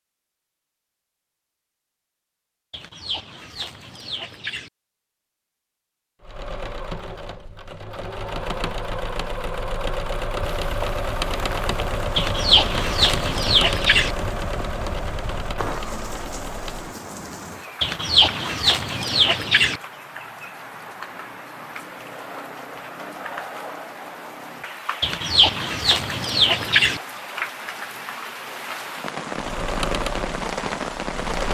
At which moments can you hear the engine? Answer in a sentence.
You can hear the engine from 6.2 to 16.9 s and from 29.4 to 31.4 s.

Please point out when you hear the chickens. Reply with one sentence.
You can hear the chickens from 2.7 to 4.7 s, from 12.2 to 14.2 s, from 17.8 to 19.8 s and from 25.0 to 27.0 s.